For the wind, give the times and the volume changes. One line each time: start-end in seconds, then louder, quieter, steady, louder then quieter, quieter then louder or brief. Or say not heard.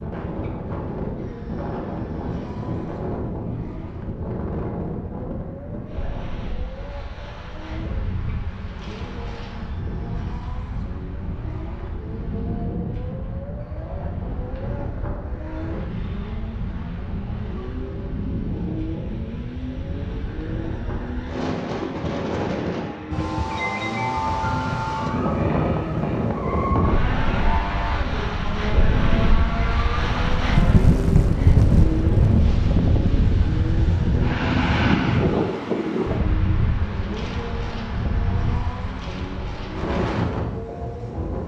0.0-41.4 louder.